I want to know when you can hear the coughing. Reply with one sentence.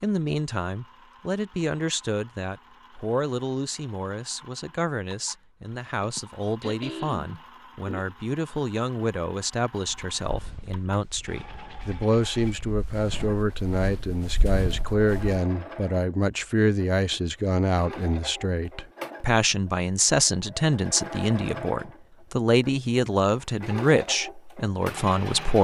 You can hear the coughing from 6.0 to 8.2 s.